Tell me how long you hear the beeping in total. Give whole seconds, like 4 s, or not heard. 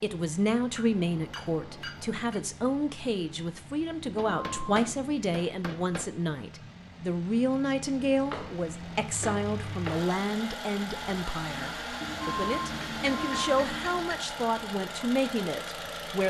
3 s.